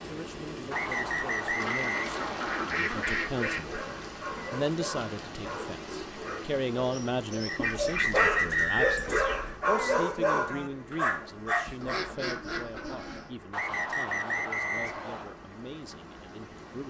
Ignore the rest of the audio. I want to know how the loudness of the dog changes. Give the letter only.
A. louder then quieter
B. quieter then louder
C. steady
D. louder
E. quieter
D.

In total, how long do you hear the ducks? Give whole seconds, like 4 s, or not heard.
6 s.